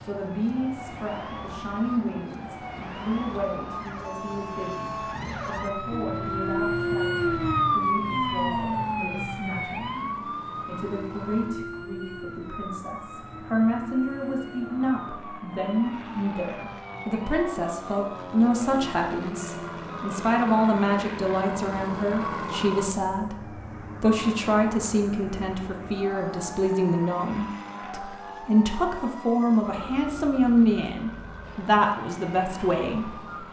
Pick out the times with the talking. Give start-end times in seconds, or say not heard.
0.0-33.3.